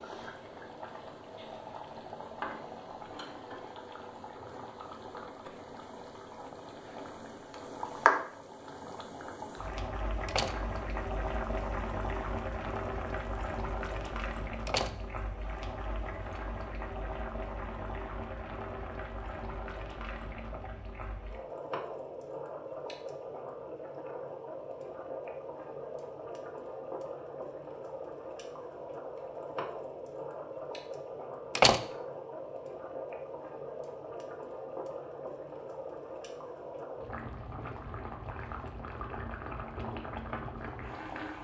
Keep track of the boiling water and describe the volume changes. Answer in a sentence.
The loudness of the boiling water stays about the same.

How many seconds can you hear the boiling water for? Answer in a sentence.
The boiling water can be heard for 41 seconds in total.